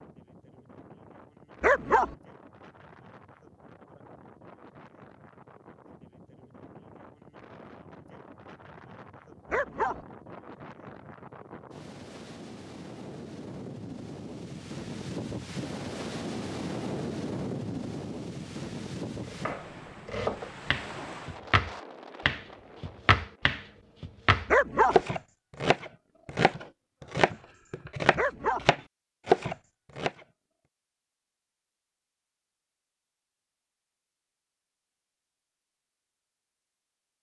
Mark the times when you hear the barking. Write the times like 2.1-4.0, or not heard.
1.6-2.1, 9.5-10.1, 24.4-25.0, 28.1-28.7.